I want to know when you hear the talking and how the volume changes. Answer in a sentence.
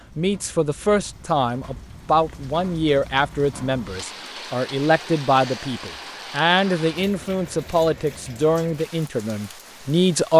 The talking can be heard from 0.1 to 10.3 s, at a steady volume.